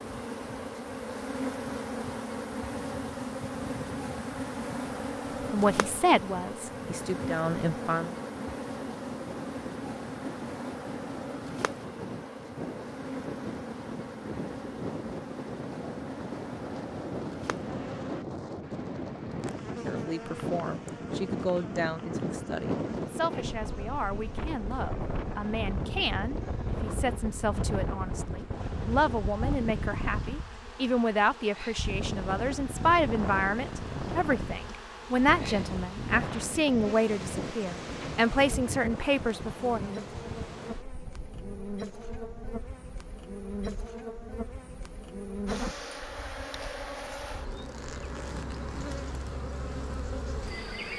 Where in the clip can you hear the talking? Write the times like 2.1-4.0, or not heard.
5.5-8.2, 19.9-40.0.